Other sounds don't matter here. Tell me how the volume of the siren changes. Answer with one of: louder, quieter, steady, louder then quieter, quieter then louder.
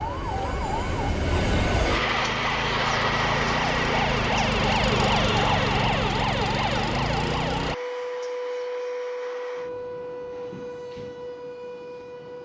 louder then quieter.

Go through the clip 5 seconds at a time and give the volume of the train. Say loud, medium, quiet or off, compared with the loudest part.
loud, medium, quiet.